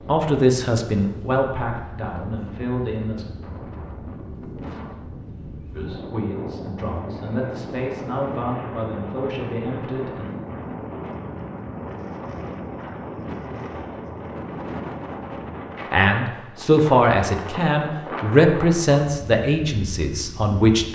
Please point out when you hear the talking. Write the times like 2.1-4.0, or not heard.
0.0-3.2, 5.7-10.3, 15.9-20.9.